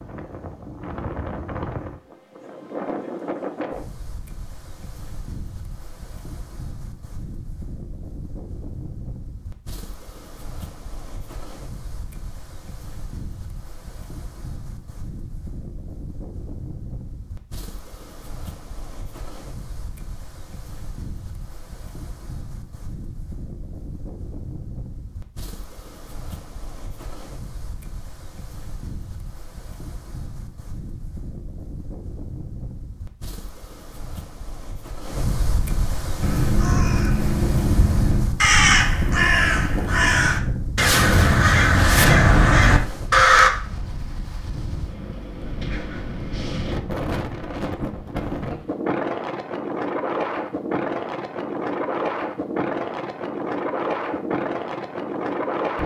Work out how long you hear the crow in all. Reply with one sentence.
You can hear the crow for 7 seconds altogether.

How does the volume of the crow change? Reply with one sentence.
The volume of the crow goes up.